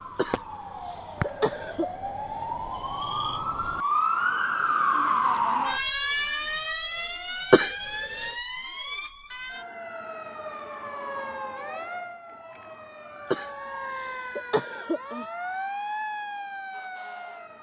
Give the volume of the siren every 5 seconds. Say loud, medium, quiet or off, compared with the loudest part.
loud, loud, medium, medium.